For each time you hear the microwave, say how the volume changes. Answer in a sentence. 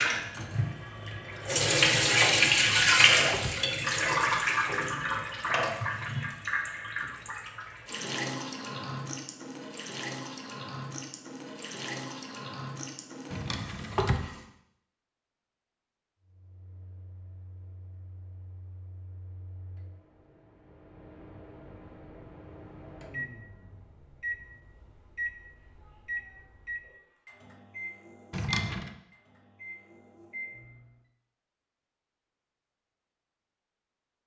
You can hear the microwave from 16.2 to 30.9 s, getting louder.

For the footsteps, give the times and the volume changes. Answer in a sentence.
The footsteps can't be heard in this clip.